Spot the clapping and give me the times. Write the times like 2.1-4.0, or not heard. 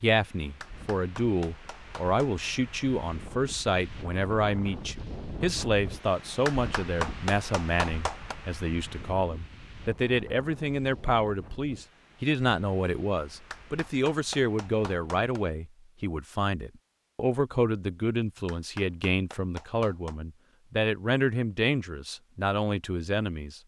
0.6-2.4, 6.5-8.3, 13.5-15.4, 18.4-20.1.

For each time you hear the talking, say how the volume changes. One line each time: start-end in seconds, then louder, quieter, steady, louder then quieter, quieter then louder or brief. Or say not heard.
0.0-23.6 steady.